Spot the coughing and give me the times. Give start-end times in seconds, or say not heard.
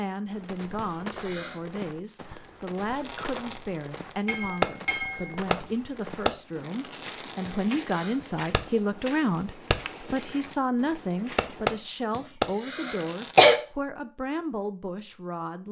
0.8-1.6, 7.5-8.2, 12.2-13.6.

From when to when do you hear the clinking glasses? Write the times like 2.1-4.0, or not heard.
4.2-5.3.